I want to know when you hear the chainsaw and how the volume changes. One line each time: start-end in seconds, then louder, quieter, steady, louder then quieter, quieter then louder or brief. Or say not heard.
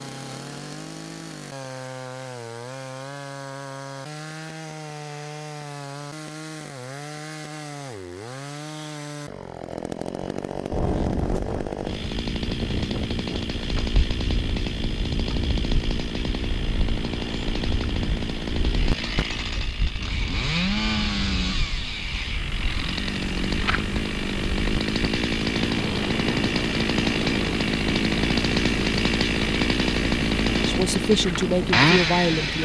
0.0-32.6 louder.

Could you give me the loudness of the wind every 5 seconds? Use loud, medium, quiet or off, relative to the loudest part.
off, off, loud, loud, medium, loud, loud.